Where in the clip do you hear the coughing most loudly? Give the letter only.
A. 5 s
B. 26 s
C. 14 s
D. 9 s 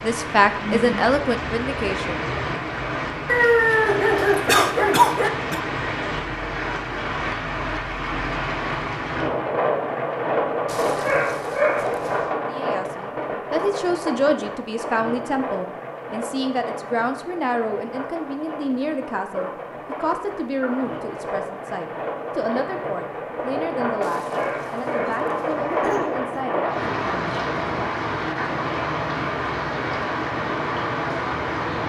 A.